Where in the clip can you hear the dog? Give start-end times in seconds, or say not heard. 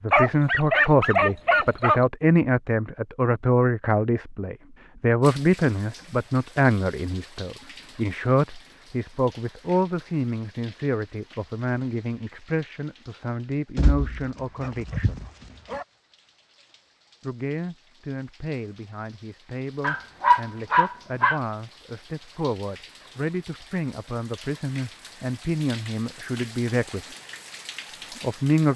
0.1-2.0, 13.8-15.8, 19.8-21.4.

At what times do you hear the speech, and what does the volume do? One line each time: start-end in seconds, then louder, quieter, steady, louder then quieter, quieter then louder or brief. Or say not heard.
0.0-15.2 quieter
17.2-27.1 louder
28.1-28.7 brief.